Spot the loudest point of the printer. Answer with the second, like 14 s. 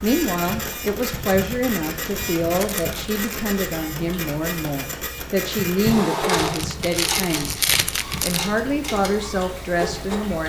6 s.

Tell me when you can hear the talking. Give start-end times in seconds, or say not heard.
0.0-10.4.